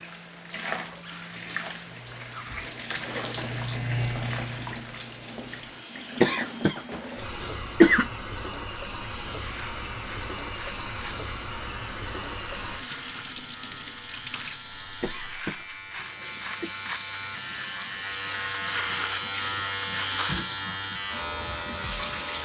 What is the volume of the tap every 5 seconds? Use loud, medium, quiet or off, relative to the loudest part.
loud, loud, loud, medium, loud.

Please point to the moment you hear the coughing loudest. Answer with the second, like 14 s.
8 s.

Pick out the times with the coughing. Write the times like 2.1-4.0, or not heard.
6.2-8.1, 15.0-16.7.